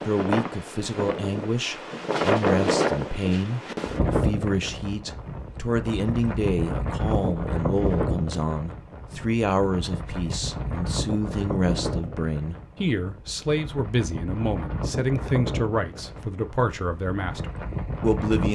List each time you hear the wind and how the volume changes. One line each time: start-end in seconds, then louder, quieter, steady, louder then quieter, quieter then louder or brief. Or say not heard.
0.0-18.5 quieter.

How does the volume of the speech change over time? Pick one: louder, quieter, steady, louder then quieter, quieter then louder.
steady.